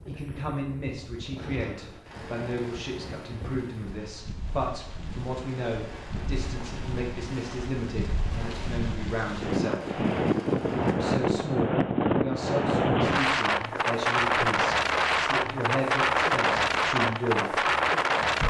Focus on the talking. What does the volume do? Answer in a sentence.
The volume of the talking stays about the same.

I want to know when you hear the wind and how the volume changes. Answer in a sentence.
The wind can be heard from 0.0 to 18.4 s, getting louder.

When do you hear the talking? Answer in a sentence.
You can hear the talking from 0.1 to 10.0 s and from 10.8 to 17.6 s.